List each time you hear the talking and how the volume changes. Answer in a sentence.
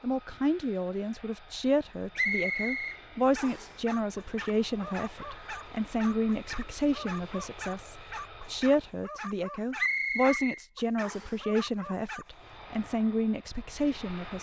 The talking can be heard from 0.0 to 14.3 s, at a steady volume.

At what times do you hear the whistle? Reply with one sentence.
The whistle can be heard from 2.1 to 3.8 s and from 9.8 to 11.3 s.